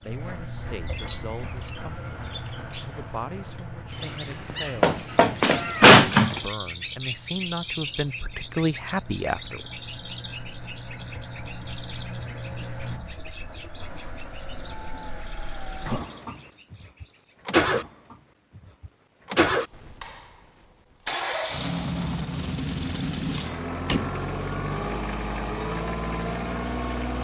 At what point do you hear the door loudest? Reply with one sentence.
The volume of the door peaks at 6 seconds.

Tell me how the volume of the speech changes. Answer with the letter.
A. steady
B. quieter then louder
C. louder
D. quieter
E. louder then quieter
C.